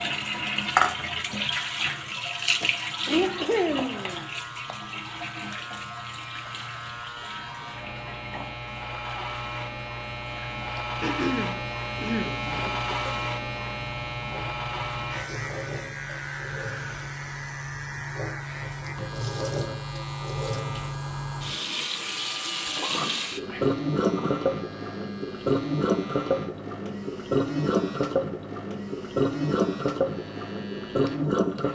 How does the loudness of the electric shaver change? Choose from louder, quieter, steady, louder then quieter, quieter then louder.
louder then quieter.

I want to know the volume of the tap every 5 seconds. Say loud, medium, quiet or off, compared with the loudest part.
loud, quiet, quiet, medium, loud, loud, loud.